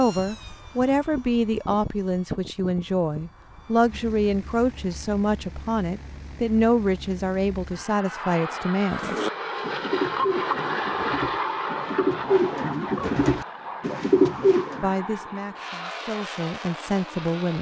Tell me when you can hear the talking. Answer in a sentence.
The talking can be heard from 0.0 to 9.2 s and from 14.8 to 17.5 s.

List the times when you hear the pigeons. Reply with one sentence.
You can hear the pigeons from 8.9 to 14.8 s.